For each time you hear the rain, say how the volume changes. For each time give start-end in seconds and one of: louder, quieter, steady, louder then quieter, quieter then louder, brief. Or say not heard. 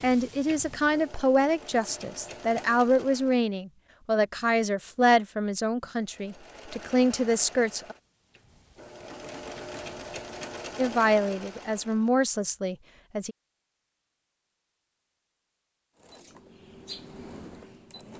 not heard.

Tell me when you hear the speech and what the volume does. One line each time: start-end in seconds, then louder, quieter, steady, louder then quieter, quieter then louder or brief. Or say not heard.
0.0-8.0 steady
10.8-13.3 brief.